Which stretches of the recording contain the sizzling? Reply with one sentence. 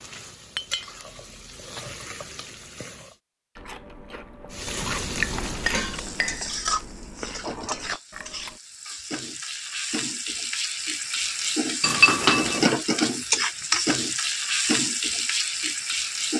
The sizzling can be heard from 0.0 to 3.2 s and from 4.5 to 16.3 s.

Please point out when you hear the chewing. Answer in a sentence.
The chewing can be heard from 3.5 to 8.6 s.